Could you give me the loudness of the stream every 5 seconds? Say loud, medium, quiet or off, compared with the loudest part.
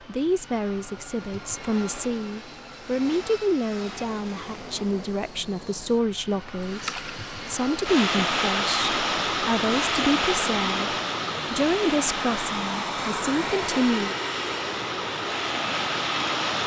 off, loud, loud, loud.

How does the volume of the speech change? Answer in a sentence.
The loudness of the speech stays about the same.